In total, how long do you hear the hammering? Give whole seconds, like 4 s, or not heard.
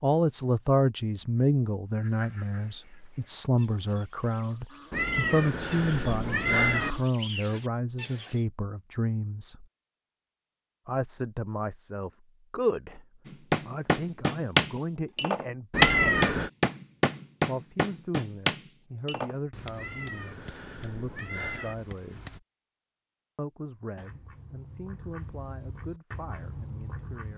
9 s.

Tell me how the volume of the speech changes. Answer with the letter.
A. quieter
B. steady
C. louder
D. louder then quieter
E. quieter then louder
A.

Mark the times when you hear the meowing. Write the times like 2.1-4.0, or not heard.
4.9-7.0, 15.7-16.5, 19.8-21.8.